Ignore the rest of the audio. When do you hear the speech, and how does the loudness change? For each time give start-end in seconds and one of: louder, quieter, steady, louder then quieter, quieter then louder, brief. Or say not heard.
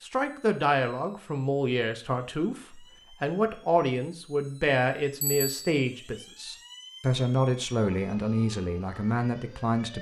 0.0-9.9 steady.